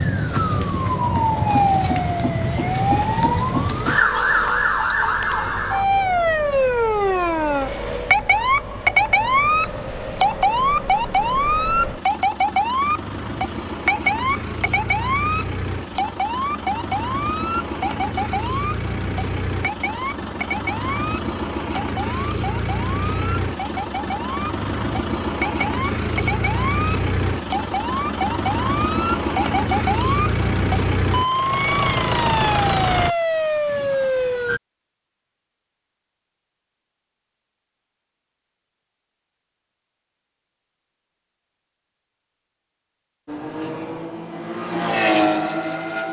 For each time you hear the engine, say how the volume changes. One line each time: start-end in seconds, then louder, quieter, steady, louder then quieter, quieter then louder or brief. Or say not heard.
0.0-33.1 louder
43.2-46.0 brief.